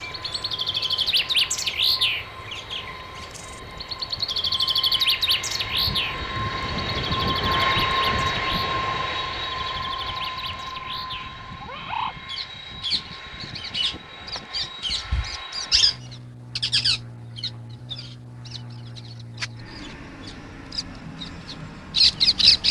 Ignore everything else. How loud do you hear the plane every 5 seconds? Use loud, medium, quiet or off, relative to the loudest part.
quiet, loud, medium, quiet, quiet.